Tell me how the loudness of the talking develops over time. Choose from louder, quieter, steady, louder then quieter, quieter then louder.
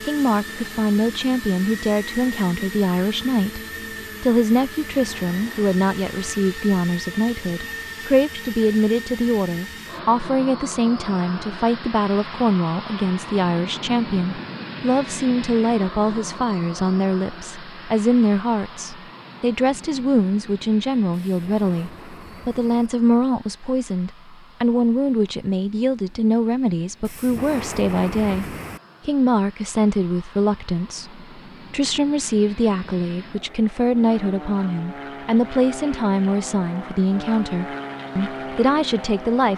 steady.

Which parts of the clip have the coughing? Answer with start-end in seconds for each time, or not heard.
not heard.